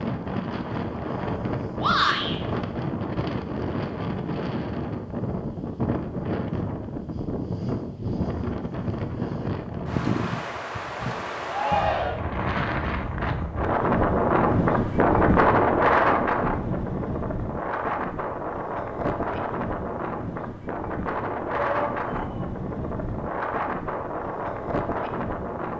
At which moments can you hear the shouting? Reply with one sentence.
The shouting can be heard from 1.8 to 2.4 s, from 11.4 to 12.2 s and from 21.6 to 22.5 s.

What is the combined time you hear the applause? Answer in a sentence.
The applause can't be heard in this clip.